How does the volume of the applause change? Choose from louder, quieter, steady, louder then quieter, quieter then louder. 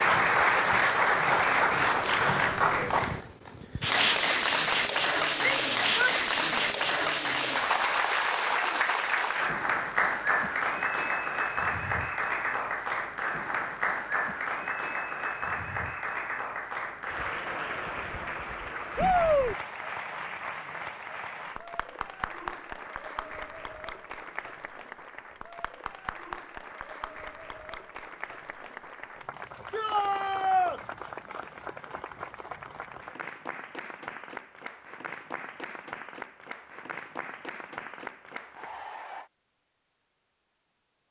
quieter.